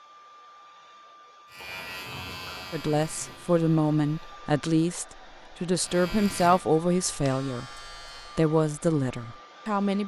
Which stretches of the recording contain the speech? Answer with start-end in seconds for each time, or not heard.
2.7-10.0.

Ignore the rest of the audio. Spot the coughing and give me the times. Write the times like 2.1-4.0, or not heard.
not heard.